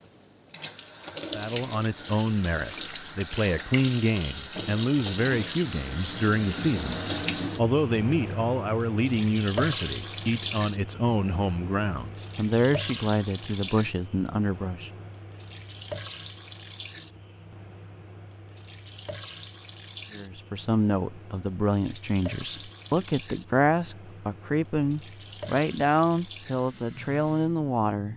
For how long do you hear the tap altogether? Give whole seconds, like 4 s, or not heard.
28 s.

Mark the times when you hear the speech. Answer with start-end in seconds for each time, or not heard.
1.4-14.9, 20.1-28.1.